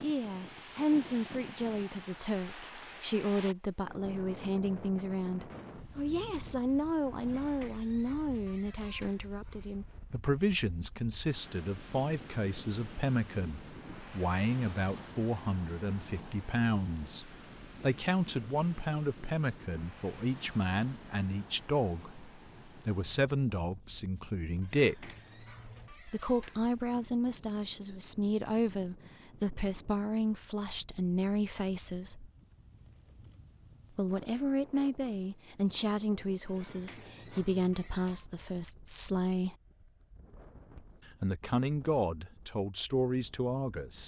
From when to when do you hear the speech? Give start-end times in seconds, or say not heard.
0.0-25.1, 26.1-32.3, 34.0-39.5, 40.8-44.0.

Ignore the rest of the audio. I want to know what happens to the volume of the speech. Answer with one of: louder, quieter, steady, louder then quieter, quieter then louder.
steady.